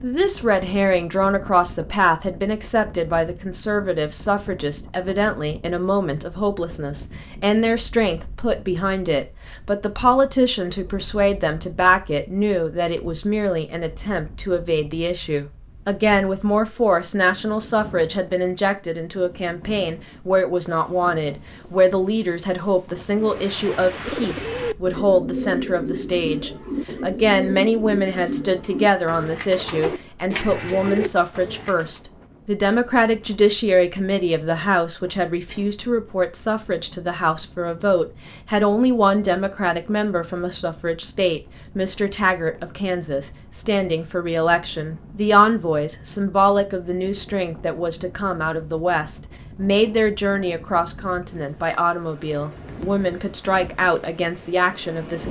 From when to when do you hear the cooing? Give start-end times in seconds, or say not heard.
23.1-32.0.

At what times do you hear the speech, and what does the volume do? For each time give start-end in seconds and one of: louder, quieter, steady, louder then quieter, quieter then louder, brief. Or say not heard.
0.0-55.2 steady.